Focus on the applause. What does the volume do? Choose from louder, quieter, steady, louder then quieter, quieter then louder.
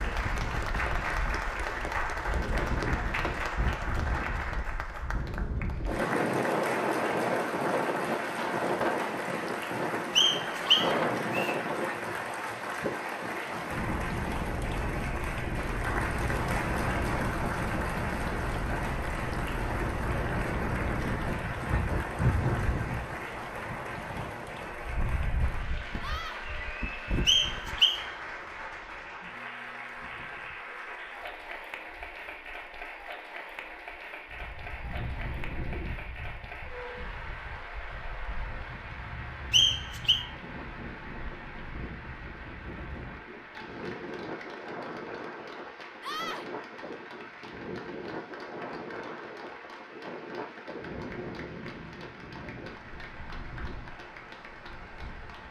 quieter.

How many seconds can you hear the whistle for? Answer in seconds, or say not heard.
3 s.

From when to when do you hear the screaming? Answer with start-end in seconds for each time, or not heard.
10.6-11.1, 26.0-26.4, 46.0-46.5.